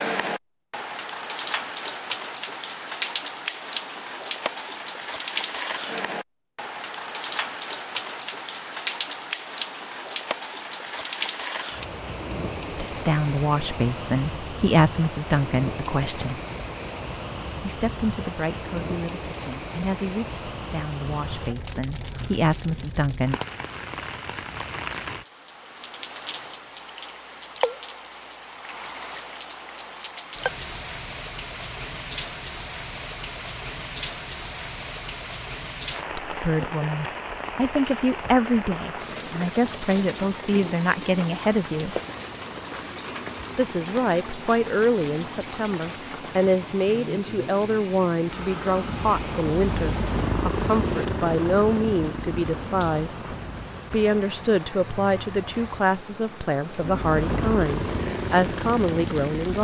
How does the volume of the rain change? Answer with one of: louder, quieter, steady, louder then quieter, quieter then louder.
quieter.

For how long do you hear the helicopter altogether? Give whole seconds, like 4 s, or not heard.
8 s.